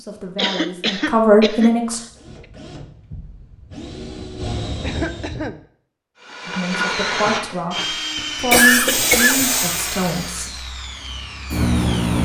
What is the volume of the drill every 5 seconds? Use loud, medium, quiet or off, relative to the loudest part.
medium, loud, medium.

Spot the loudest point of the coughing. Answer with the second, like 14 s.
9 s.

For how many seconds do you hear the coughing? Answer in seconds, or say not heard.
3 s.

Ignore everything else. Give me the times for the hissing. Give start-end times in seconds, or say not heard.
8.8-12.2.